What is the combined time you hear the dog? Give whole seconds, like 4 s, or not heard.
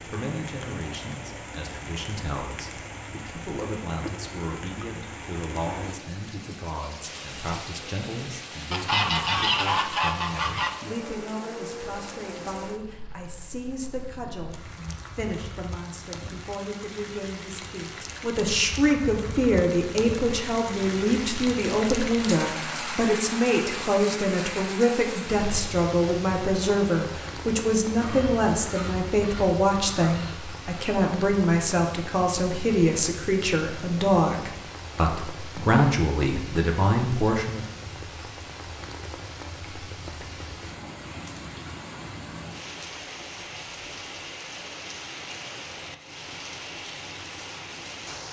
not heard.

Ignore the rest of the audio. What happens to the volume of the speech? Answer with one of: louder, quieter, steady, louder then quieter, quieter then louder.
louder.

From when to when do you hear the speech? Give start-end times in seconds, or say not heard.
0.1-37.6.